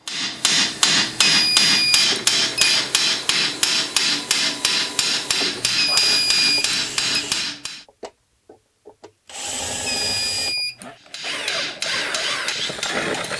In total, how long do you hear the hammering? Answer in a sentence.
The hammering can be heard for 10 seconds in total.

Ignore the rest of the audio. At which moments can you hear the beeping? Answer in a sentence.
You can hear the beeping from 1.1 to 2.8 s, from 5.5 to 7.2 s and from 9.7 to 10.8 s.